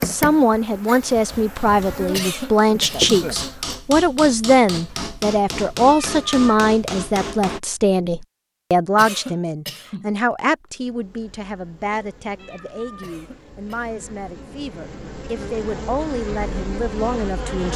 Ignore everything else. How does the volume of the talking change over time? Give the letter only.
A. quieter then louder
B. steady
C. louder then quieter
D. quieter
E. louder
D.